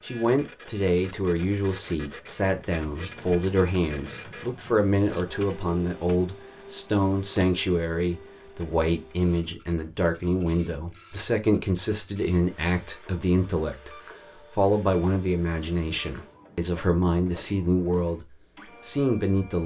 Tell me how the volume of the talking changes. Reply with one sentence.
The loudness of the talking stays about the same.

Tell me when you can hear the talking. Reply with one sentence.
The talking can be heard from 0.0 to 19.6 s.